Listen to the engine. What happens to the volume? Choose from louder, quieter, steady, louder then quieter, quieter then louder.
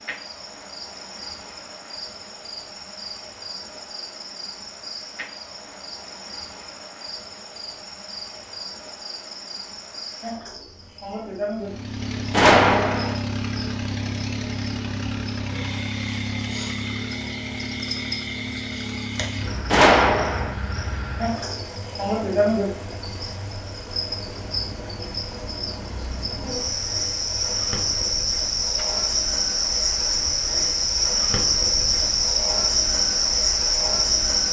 quieter.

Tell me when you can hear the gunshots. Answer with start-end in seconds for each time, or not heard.
12.3-13.2, 19.7-20.5.